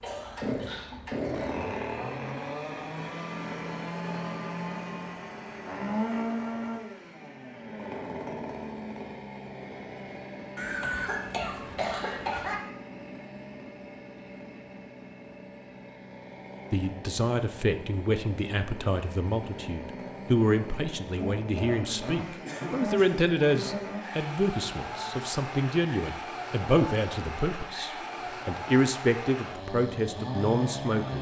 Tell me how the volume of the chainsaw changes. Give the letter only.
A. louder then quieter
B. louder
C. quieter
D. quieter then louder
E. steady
D.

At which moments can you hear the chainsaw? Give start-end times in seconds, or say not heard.
0.0-31.1.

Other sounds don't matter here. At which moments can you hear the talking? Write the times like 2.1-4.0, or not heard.
16.7-31.1.